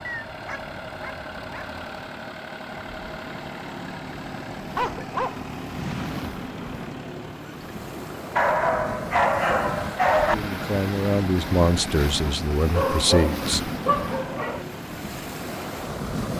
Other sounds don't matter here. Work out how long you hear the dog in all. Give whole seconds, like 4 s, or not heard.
7 s.